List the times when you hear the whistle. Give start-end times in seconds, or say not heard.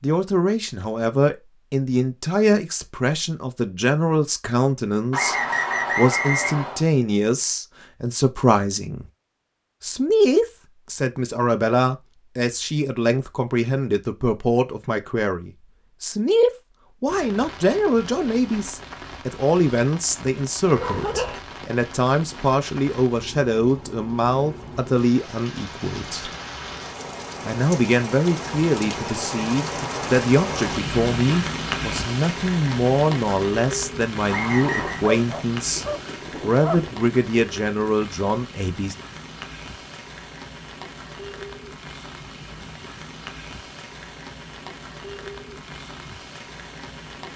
5.1-6.8, 34.2-35.0.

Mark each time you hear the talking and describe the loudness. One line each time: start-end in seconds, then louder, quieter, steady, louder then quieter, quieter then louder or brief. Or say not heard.
0.0-9.1 steady
9.8-26.3 steady
27.4-39.0 steady.